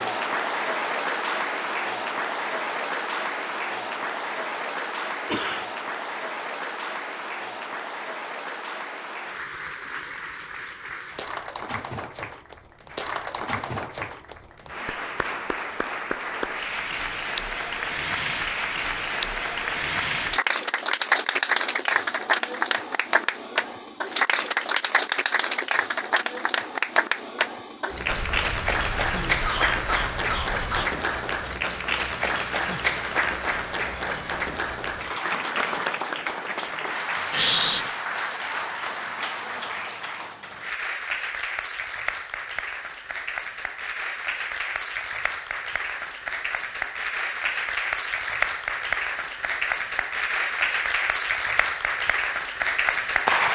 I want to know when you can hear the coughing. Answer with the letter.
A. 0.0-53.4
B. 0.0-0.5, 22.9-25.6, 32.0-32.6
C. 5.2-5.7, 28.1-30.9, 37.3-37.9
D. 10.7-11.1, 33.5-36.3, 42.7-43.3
C.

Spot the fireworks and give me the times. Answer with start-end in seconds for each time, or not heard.
not heard.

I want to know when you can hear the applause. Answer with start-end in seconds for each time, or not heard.
0.0-53.4.